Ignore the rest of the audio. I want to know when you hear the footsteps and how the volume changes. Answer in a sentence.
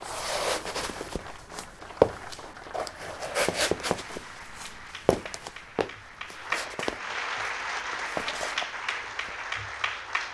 You can hear the footsteps from 0.0 to 9.3 s, getting quieter.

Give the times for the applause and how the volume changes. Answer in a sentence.
The applause can be heard from 0.0 to 10.2 s, getting louder.